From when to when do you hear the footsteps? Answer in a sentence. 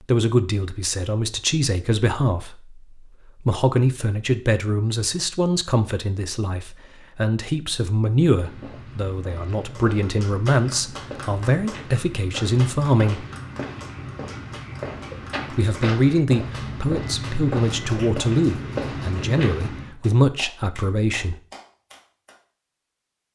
You can hear the footsteps from 8.2 to 19.9 s.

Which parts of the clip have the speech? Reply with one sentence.
You can hear the speech from 0.1 to 13.2 s and from 15.5 to 21.4 s.